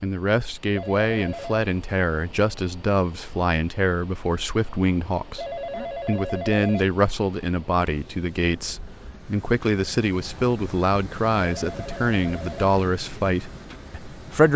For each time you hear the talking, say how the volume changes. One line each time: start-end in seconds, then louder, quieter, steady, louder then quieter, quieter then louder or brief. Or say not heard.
0.0-14.5 steady.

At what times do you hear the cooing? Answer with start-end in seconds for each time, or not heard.
not heard.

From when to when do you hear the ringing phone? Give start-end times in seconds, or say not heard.
0.8-1.6, 5.3-6.8, 11.4-12.7.